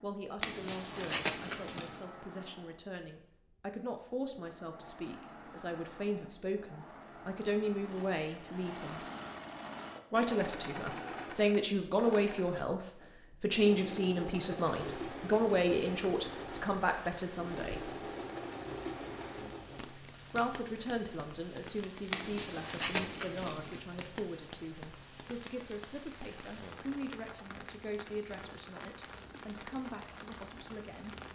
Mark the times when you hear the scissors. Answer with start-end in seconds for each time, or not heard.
0.4-1.9, 22.1-23.8.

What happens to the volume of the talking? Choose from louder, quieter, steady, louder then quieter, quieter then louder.
louder then quieter.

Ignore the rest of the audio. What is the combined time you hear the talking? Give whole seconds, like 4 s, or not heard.
28 s.